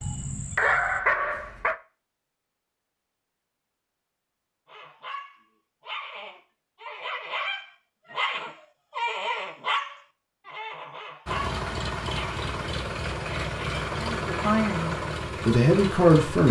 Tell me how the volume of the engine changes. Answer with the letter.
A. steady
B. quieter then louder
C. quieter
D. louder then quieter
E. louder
A.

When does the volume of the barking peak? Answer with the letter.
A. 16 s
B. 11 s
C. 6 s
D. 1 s
D.